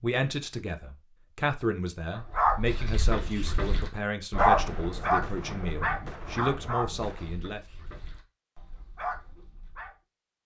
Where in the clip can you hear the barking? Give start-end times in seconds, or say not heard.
2.3-9.9.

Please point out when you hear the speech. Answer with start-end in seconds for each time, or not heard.
0.0-7.6.